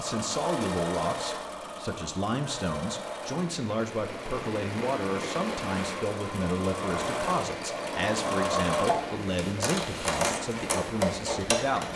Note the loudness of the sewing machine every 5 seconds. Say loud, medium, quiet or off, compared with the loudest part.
medium, loud, loud.